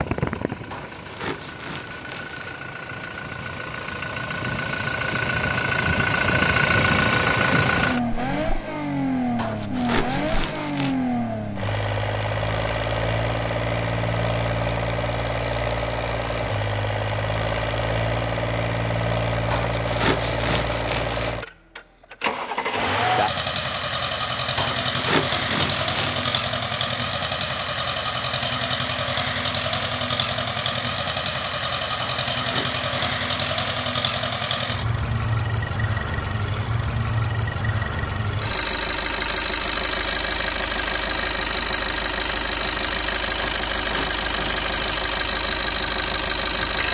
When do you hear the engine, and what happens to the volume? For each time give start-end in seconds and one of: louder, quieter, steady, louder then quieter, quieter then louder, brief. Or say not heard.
0.0-46.8 steady.